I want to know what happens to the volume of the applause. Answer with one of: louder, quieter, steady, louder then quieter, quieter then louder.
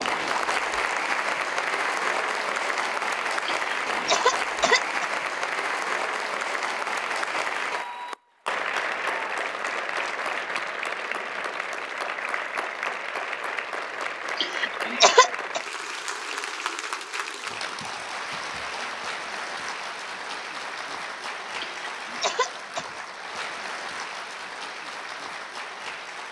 quieter.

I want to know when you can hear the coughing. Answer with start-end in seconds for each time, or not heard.
3.5-5.0, 14.3-15.6, 21.6-22.9.